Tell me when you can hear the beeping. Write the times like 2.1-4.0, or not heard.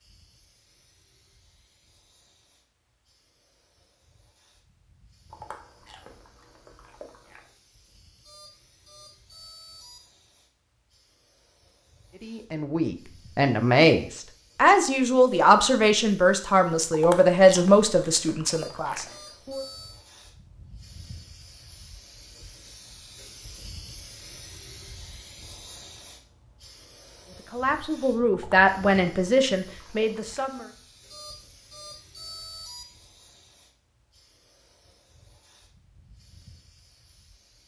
8.2-10.0, 18.4-20.0, 31.1-32.9.